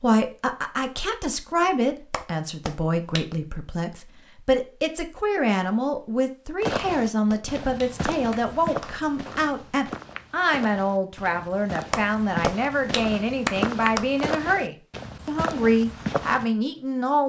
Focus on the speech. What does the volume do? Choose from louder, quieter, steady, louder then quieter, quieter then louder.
steady.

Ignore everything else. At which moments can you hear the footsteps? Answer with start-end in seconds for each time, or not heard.
6.6-16.4.